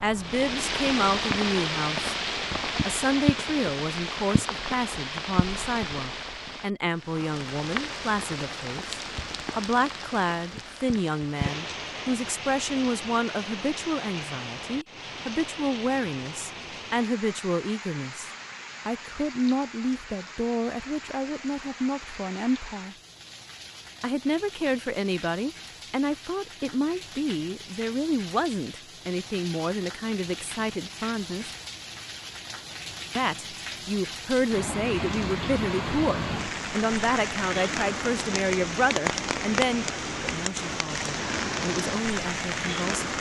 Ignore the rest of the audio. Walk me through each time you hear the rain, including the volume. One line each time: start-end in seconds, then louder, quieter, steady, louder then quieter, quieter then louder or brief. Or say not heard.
0.0-43.1 quieter then louder.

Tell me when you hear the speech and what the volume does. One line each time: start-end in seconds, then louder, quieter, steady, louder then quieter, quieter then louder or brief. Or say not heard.
0.0-2.1 brief
2.9-22.9 steady
24.0-31.5 steady
33.1-43.1 quieter.